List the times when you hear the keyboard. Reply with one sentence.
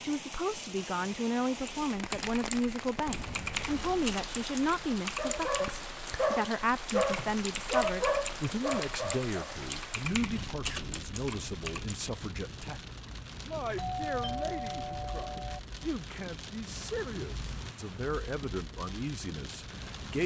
The keyboard can be heard from 1.6 to 11.9 s.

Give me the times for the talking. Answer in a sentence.
The talking can be heard from 0.0 to 20.2 s.